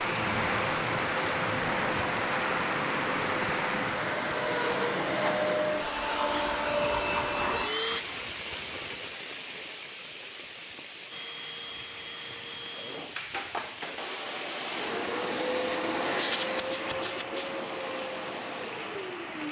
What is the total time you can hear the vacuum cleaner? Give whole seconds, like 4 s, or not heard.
16 s.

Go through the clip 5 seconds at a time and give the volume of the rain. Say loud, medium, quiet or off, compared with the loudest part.
loud, medium, quiet, medium.